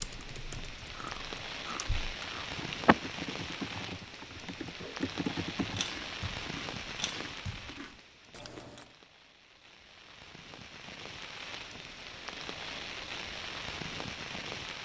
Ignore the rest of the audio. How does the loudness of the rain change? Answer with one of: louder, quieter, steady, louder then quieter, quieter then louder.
quieter then louder.